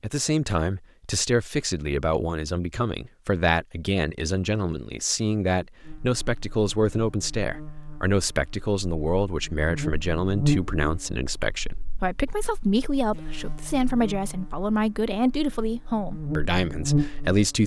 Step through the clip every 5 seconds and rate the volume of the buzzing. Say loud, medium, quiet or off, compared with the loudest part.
off, medium, loud, loud.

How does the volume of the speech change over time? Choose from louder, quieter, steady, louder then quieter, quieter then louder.
steady.